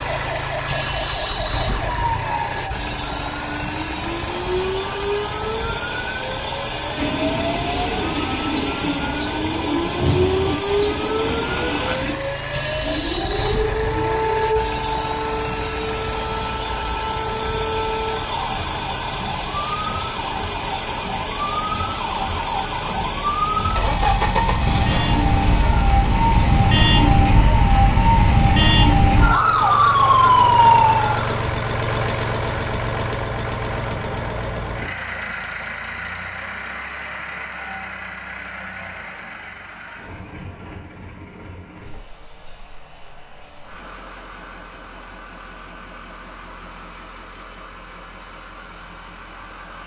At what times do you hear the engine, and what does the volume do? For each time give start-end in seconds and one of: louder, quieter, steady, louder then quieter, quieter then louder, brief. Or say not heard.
0.0-49.8 quieter.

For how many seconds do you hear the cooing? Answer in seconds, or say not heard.
5 s.